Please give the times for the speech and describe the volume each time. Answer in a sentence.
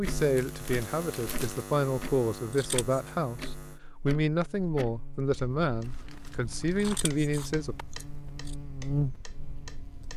The speech can be heard from 0.0 to 7.8 s, at a steady volume.